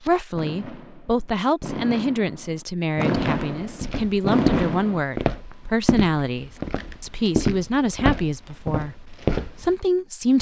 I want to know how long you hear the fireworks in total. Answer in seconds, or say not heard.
5 s.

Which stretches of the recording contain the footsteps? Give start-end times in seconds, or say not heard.
3.1-9.8.